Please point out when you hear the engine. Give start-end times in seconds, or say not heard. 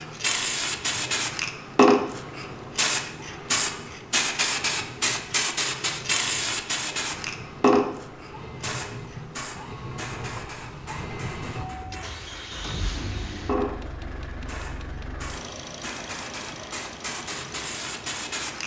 0.0-18.6.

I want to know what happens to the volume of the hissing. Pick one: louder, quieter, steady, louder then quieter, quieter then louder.
quieter.